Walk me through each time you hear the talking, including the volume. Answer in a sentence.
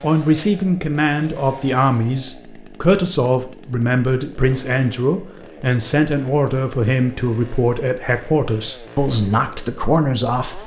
The talking can be heard from 0.0 to 10.6 s, at a steady volume.